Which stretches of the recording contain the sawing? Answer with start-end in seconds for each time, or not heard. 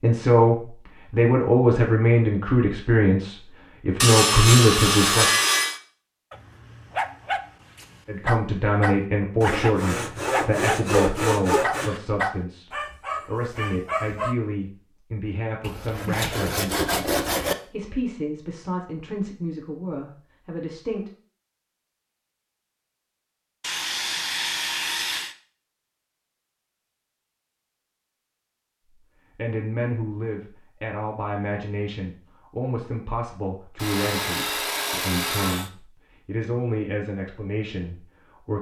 4.0-5.8, 9.4-12.0, 15.6-17.6, 23.6-25.4, 33.8-35.7.